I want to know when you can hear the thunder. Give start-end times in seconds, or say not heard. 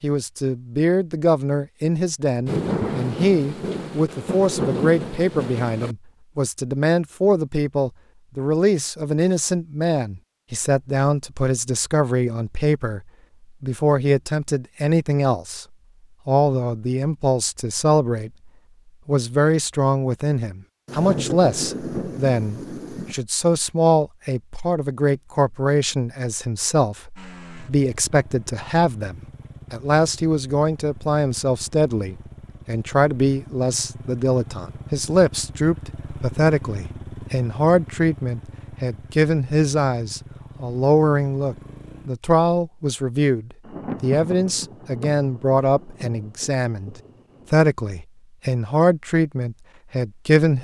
2.5-6.0, 20.9-23.2, 43.6-47.5.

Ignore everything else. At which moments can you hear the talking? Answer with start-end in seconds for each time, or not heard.
0.0-13.0, 13.6-15.7, 16.2-46.9, 47.5-50.5.